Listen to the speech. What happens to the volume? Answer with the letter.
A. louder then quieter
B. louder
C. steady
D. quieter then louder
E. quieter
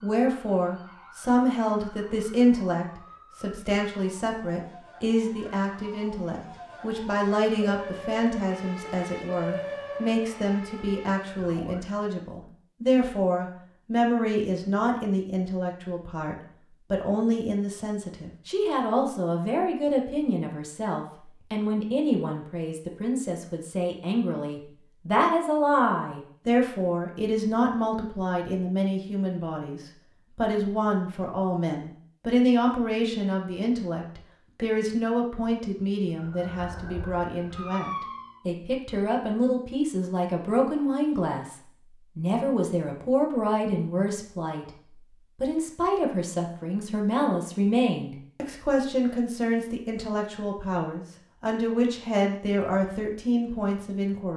C.